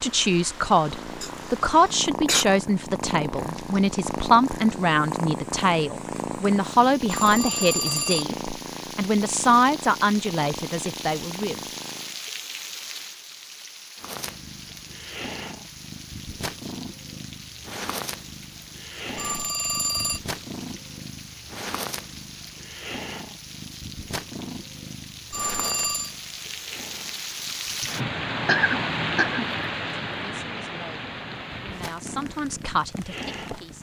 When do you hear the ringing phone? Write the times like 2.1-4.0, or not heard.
7.0-8.2, 19.1-20.2, 25.3-26.1.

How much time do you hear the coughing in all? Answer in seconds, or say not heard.
3 s.